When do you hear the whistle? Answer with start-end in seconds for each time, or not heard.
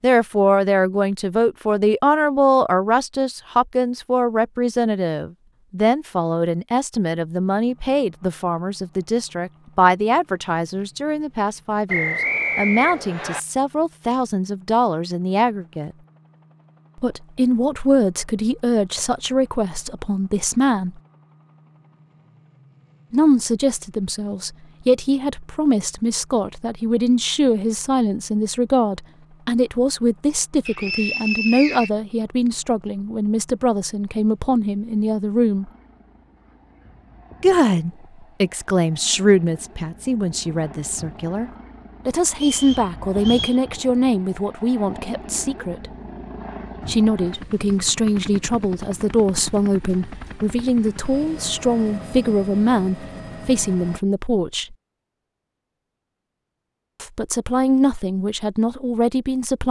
11.8-13.4, 30.6-31.9, 42.3-43.6.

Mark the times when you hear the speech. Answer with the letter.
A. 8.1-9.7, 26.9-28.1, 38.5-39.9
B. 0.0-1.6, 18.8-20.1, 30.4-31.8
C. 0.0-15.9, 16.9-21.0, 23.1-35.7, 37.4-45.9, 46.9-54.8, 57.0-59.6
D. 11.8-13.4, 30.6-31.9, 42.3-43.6
C.